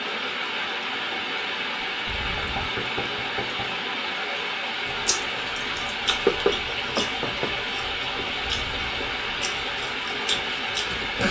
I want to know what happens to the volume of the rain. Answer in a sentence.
The volume of the rain stays about the same.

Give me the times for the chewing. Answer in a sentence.
The chewing can be heard from 4.8 to 11.2 s.